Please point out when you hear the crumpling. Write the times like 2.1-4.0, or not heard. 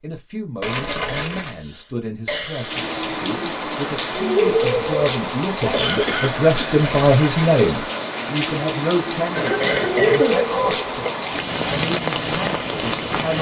0.6-1.6, 6.8-7.6.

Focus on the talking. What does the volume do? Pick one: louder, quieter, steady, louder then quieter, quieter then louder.
louder then quieter.